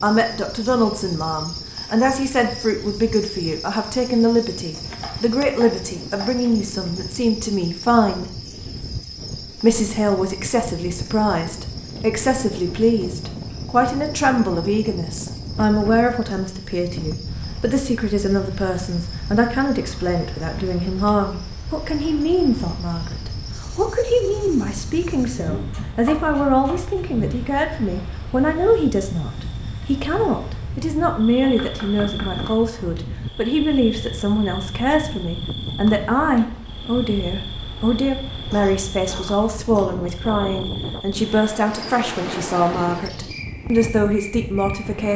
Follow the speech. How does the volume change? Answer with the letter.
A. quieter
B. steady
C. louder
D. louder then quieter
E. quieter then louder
B.